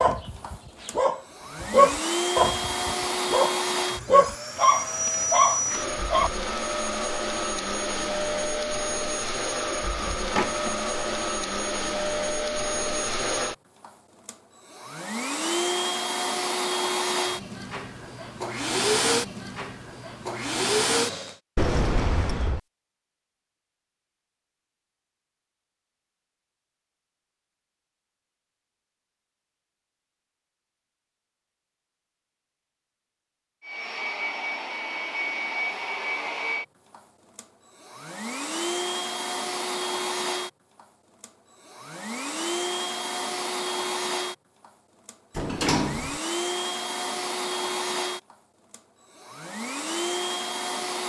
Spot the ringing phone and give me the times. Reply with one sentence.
The ringing phone can't be heard in this clip.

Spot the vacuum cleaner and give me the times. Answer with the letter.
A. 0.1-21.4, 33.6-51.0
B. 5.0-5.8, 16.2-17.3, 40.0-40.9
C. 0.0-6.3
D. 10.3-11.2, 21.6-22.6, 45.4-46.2
A.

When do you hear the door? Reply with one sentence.
The door can be heard from 10.3 to 11.2 s, from 21.6 to 22.6 s and from 45.4 to 46.2 s.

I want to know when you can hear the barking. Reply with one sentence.
You can hear the barking from 0.0 to 6.3 s.